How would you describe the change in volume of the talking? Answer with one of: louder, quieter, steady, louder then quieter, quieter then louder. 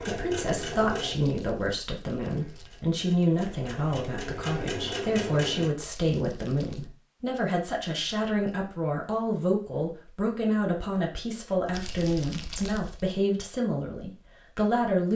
steady.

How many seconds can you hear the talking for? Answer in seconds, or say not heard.
15 s.